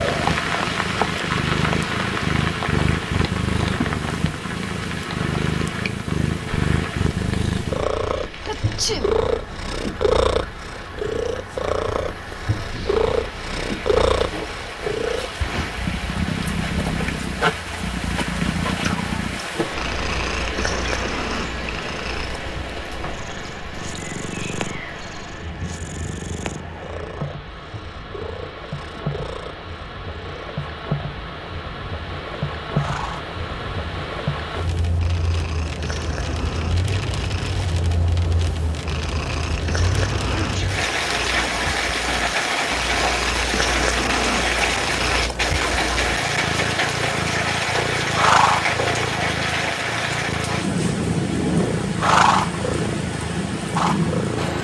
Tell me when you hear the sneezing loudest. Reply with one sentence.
The loudest moment of the sneezing is at 9 seconds.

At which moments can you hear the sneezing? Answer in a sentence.
The sneezing can be heard from 8.4 to 9.1 s and from 40.2 to 40.8 s.